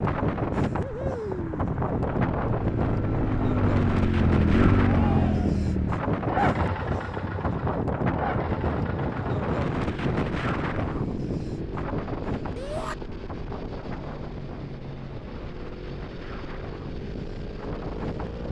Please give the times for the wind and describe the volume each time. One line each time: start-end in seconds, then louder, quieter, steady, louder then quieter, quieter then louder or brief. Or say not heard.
0.0-18.4 quieter.